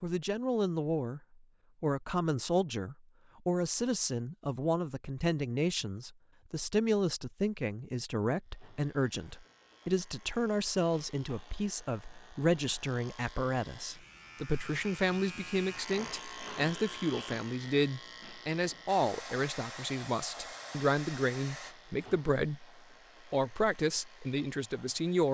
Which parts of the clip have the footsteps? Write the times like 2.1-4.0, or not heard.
not heard.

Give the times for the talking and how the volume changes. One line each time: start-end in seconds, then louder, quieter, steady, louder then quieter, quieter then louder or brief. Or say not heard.
0.0-1.2 brief
1.8-22.6 steady
23.3-25.3 brief.